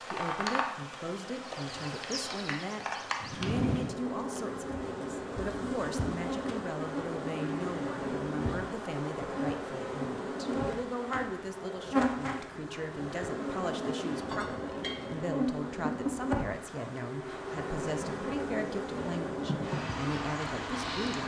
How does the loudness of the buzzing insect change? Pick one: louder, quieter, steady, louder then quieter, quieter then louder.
steady.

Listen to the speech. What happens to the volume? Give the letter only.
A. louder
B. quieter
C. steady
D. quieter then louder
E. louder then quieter
C.